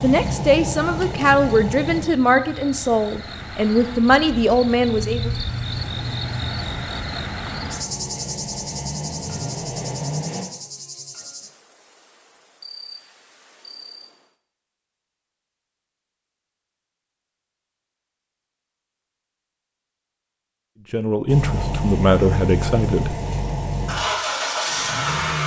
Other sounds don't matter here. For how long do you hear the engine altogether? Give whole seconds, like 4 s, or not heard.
11 s.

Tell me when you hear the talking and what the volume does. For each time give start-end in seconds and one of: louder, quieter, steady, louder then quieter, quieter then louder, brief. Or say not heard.
0.0-5.3 steady
20.9-23.1 brief.